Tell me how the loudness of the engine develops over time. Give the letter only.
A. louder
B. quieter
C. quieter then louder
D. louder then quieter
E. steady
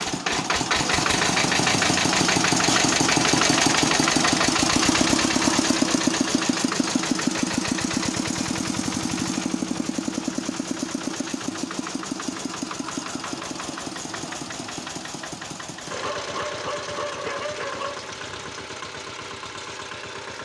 B.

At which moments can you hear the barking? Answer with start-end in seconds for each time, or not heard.
15.9-18.1.